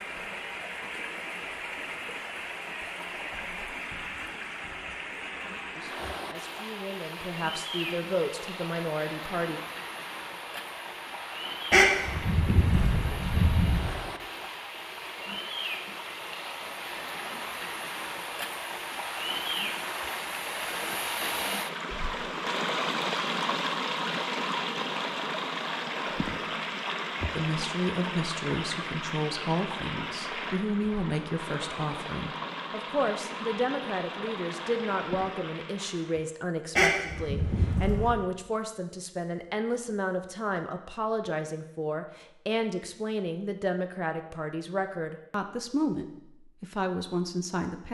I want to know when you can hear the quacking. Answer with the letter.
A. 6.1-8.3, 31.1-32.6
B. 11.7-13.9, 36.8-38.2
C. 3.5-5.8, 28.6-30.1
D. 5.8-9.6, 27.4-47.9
B.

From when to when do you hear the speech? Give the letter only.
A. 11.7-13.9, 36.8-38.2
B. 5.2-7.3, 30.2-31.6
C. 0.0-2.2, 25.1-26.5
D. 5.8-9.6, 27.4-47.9
D.